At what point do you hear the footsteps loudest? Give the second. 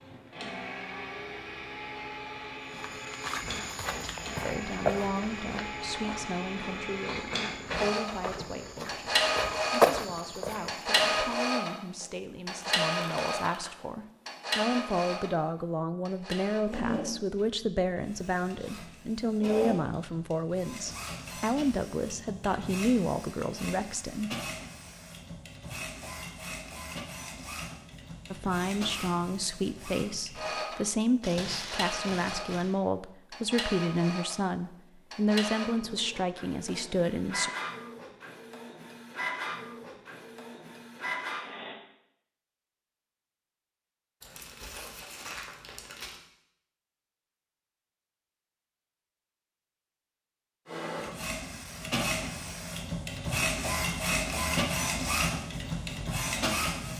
10 s.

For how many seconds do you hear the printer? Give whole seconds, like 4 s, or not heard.
48 s.